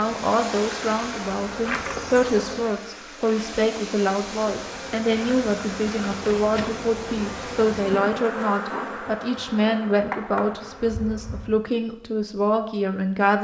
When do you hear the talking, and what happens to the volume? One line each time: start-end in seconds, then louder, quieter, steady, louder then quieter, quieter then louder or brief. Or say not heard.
0.0-13.3 steady.